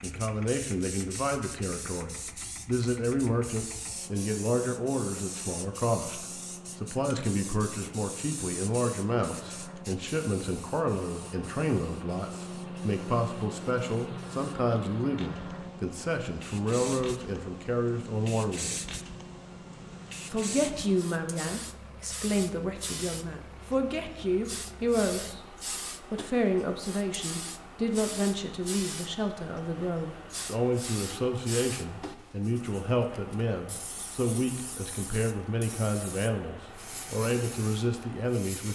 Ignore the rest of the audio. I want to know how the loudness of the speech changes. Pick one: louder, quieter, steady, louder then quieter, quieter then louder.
steady.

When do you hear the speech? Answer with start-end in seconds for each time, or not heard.
0.0-18.8, 20.3-25.4, 26.1-38.7.